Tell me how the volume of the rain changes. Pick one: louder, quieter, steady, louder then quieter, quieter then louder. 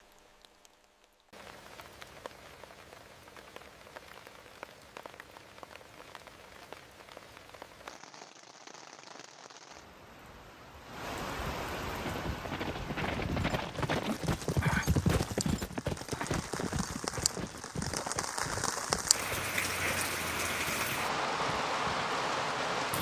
louder.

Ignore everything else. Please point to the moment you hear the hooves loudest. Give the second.
15 s.